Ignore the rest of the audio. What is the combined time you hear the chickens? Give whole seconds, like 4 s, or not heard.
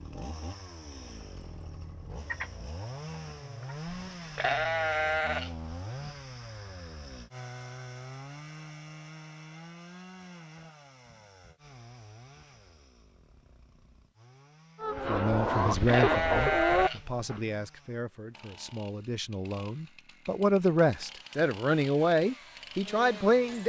4 s.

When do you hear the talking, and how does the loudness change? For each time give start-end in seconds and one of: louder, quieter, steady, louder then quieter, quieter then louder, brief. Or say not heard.
15.1-23.6 quieter then louder.